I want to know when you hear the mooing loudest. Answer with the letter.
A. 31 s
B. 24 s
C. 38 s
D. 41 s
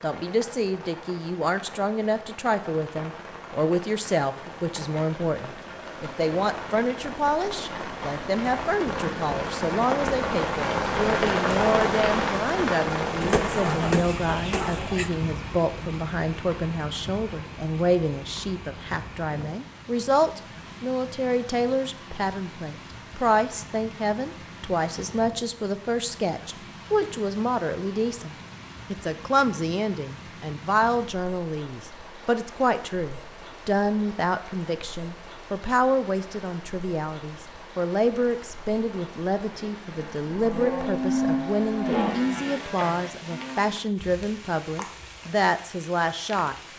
D.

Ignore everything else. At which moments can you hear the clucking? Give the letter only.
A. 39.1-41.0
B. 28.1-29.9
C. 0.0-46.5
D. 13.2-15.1
D.